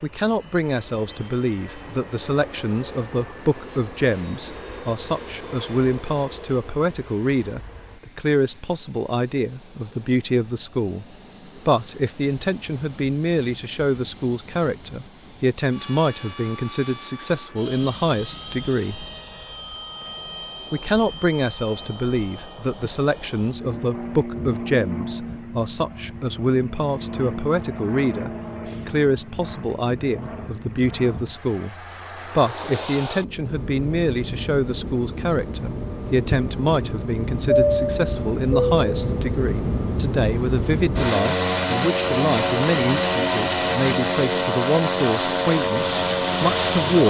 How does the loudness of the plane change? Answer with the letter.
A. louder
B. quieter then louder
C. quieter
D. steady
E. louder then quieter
A.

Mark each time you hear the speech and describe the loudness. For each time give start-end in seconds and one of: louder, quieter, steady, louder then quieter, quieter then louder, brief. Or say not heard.
0.0-11.1 steady
11.7-19.1 steady
20.7-31.8 steady
32.4-47.0 steady.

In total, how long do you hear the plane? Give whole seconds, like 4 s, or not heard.
47 s.